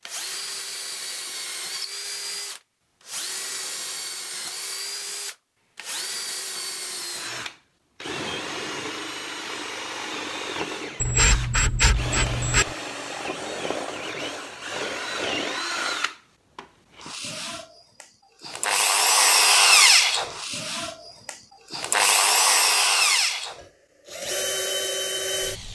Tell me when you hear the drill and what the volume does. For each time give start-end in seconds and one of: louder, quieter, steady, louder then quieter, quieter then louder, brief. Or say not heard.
0.0-25.7 louder.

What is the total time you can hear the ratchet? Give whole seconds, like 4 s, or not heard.
2 s.